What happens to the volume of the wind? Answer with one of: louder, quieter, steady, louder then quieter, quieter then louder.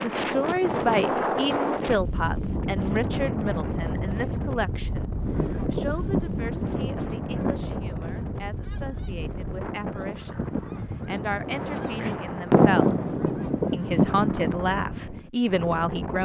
quieter.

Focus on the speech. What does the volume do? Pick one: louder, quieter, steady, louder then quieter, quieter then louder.
quieter then louder.